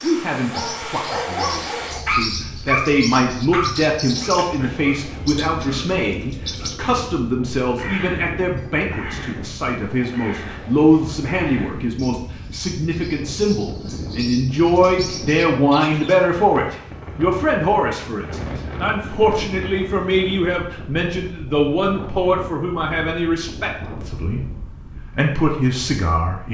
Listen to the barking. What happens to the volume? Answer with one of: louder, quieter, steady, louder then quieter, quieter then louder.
louder then quieter.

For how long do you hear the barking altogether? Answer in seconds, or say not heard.
6 s.